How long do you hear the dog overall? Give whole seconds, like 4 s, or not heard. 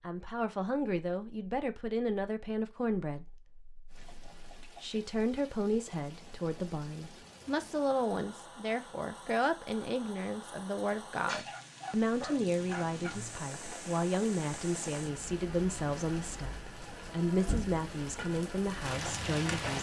2 s.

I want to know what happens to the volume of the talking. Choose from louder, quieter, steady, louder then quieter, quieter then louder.
steady.